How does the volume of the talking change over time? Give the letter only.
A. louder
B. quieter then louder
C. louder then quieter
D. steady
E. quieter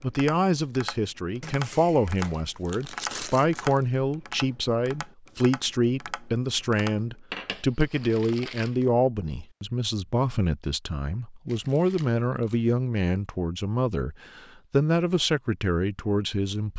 D.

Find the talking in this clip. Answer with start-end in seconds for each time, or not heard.
0.0-16.7.